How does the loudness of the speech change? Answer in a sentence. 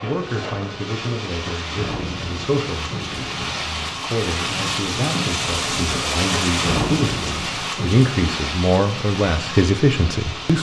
The loudness of the speech goes up.